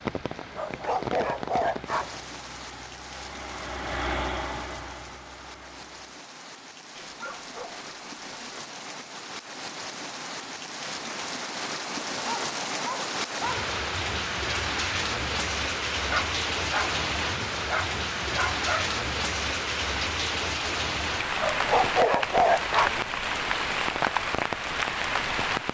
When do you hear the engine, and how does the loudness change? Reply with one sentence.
You can hear the engine from 0.0 to 6.1 s, getting louder then quieter.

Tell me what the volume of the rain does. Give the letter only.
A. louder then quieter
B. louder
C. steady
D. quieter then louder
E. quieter
B.